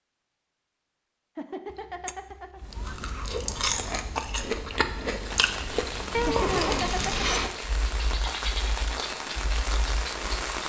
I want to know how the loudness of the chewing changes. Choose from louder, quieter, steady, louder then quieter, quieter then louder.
quieter.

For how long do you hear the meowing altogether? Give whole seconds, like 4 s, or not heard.
3 s.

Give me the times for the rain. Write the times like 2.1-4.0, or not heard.
5.1-10.6.